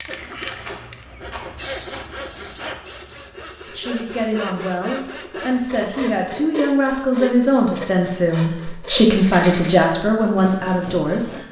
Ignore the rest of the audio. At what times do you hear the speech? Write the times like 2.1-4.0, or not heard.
3.7-11.4.